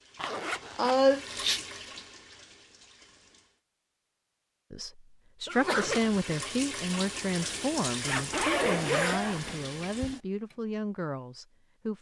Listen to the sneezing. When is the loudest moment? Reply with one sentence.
The loudest moment of the sneezing is at 1 second.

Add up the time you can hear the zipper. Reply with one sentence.
You can hear the zipper for 3 seconds altogether.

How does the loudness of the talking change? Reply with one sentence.
The volume of the talking goes down.